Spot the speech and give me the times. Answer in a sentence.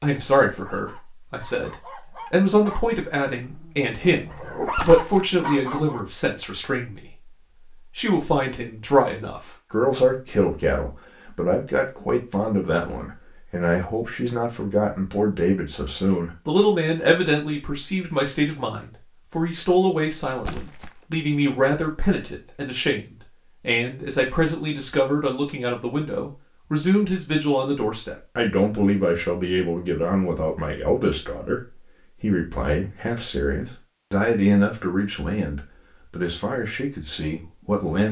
The speech can be heard from 0.0 to 38.0 s.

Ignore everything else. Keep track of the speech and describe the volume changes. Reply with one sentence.
The loudness of the speech stays about the same.